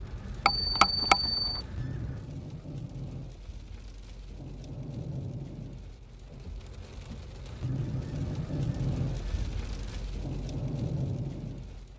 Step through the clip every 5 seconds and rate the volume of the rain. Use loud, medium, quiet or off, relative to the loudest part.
medium, loud, loud.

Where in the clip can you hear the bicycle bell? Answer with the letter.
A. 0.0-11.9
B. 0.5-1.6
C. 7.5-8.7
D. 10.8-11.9
B.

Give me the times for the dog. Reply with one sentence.
The dog can't be heard in this clip.